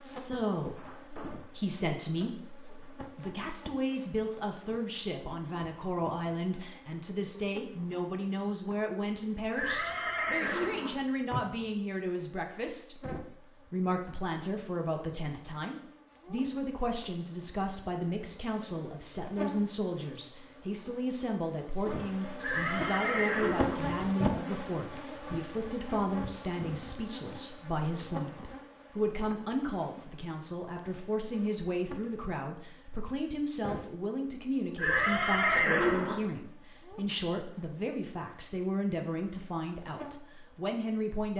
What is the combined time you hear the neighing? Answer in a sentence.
The neighing can be heard for 5 seconds in total.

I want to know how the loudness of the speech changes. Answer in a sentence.
The loudness of the speech stays about the same.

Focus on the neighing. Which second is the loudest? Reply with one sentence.
The volume of the neighing peaks at 36 seconds.